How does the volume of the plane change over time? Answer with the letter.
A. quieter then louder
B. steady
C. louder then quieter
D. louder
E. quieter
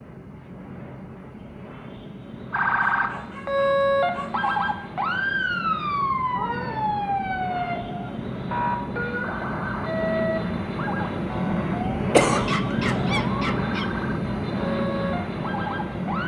D.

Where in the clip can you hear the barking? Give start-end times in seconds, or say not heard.
2.9-4.7, 12.4-13.9.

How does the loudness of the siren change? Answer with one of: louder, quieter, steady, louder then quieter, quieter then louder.
quieter.